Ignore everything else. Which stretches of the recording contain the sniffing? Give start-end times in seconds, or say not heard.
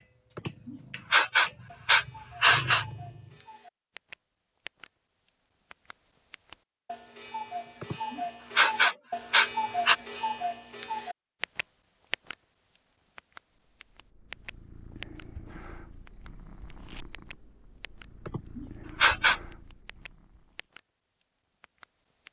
0.3-2.9, 7.8-9.9, 18.2-19.4.